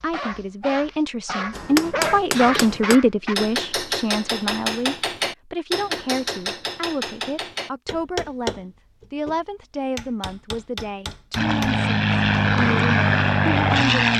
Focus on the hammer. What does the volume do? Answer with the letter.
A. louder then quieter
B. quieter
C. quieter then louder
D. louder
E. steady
B.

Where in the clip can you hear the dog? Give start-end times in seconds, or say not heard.
0.0-3.4.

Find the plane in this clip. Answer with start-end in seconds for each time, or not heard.
11.3-14.1.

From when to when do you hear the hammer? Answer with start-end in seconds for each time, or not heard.
1.5-12.8.